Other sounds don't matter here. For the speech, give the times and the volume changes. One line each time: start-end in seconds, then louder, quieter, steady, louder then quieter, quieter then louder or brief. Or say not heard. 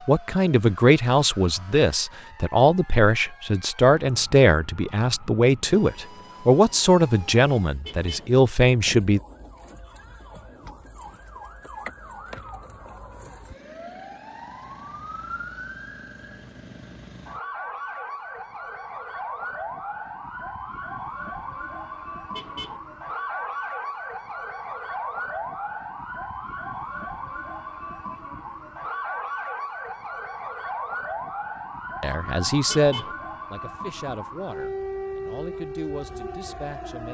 0.1-9.2 steady
32.0-37.0 quieter.